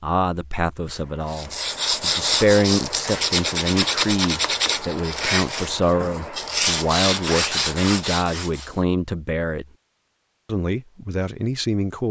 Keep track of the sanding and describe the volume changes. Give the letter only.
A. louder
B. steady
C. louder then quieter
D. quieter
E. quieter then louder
B.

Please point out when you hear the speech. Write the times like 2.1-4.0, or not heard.
0.0-9.7, 10.4-12.0.